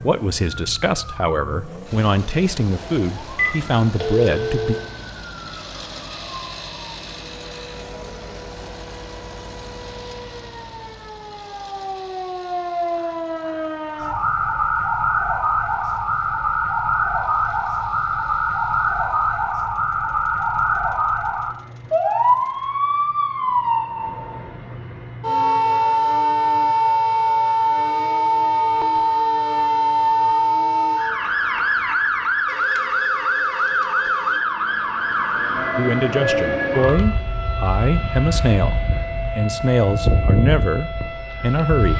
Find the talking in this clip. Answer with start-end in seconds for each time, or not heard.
0.0-4.8, 35.8-41.9.